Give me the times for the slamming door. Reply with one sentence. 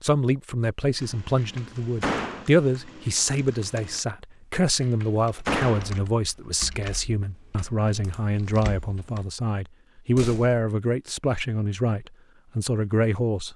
You can hear the slamming door from 1.4 to 2.5 s, from 4.8 to 6.0 s and from 9.9 to 10.6 s.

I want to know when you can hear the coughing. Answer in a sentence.
You can't hear the coughing here.